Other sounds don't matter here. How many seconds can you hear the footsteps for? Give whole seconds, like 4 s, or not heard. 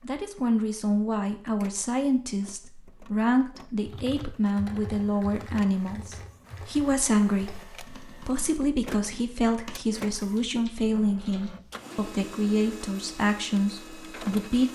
not heard.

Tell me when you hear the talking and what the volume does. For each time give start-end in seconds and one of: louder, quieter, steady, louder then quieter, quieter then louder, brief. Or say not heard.
0.1-14.6 steady.